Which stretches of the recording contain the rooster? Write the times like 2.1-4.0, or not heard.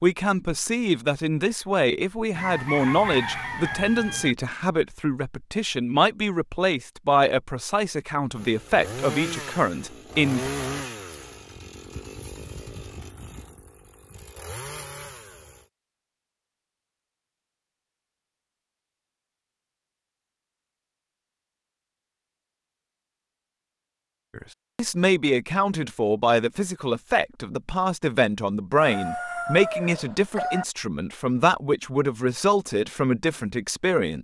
2.3-4.3, 28.8-30.6.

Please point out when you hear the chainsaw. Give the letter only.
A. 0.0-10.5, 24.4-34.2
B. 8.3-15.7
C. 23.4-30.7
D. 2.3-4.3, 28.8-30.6
B.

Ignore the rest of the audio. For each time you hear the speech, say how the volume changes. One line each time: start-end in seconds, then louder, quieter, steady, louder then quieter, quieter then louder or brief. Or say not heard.
0.0-10.5 steady
24.4-34.2 steady.